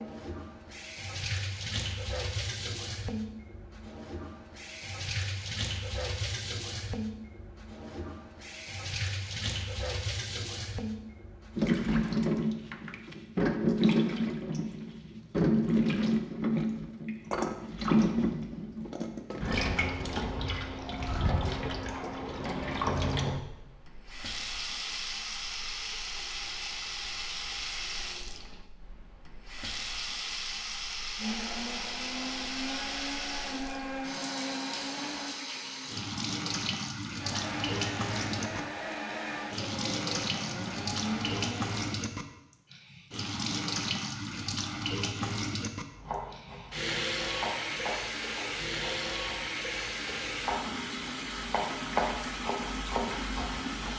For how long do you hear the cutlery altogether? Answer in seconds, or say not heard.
not heard.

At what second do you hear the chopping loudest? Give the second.
52 s.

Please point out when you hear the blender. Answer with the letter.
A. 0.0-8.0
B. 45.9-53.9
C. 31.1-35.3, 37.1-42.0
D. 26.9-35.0
C.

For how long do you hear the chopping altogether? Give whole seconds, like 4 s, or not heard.
8 s.